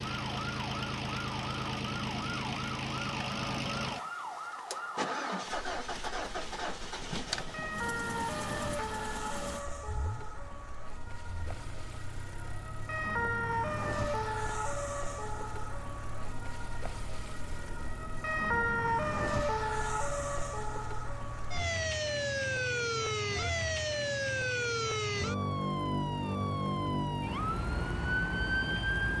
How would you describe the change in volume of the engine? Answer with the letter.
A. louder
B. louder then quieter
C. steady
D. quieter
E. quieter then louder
D.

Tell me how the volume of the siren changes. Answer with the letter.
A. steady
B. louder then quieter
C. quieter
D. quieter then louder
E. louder
E.